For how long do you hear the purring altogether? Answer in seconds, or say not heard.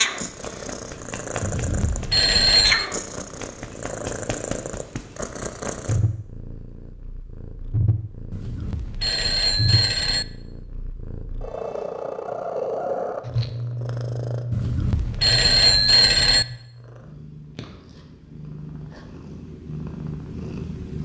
21 s.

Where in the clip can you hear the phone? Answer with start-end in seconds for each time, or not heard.
1.4-2.9, 8.3-10.2, 14.5-16.4.